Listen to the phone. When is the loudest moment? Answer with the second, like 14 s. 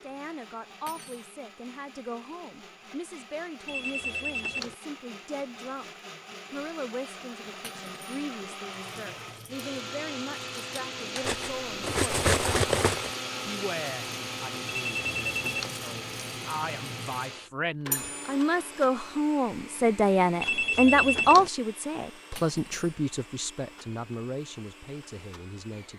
21 s.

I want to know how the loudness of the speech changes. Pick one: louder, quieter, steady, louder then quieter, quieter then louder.
louder then quieter.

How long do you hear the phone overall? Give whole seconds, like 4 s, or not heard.
3 s.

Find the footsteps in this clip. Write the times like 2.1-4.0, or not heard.
not heard.